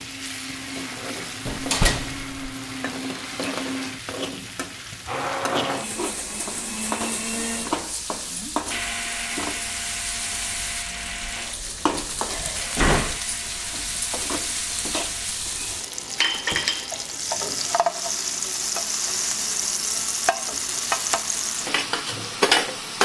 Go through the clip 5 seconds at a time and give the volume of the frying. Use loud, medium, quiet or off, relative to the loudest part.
medium, medium, medium, loud, loud.